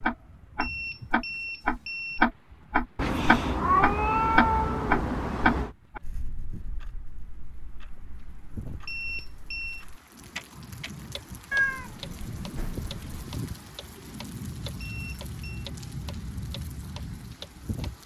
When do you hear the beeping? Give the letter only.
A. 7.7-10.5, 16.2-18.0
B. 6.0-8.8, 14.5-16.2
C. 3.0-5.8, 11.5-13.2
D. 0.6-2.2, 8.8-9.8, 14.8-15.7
D.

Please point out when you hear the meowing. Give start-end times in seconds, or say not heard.
3.0-5.8, 11.5-13.2.